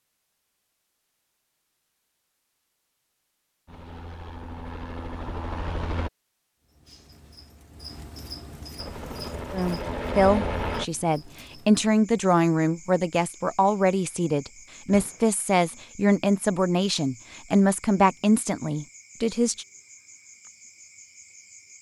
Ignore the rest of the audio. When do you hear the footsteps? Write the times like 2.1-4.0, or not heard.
not heard.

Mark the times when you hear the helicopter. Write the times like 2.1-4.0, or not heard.
3.6-6.1, 8.8-10.8.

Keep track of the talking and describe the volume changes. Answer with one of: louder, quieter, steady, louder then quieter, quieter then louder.
steady.